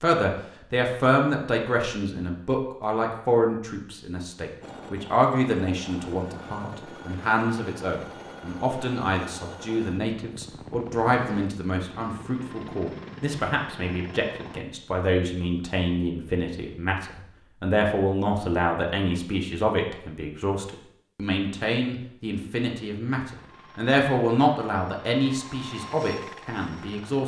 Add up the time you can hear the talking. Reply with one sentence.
The talking can be heard for 27 seconds in total.